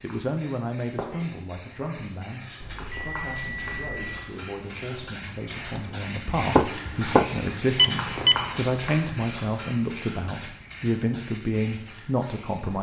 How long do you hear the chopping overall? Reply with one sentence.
The chopping can be heard for 2 seconds in total.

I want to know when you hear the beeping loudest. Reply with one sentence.
The loudest moment of the beeping is at 8 seconds.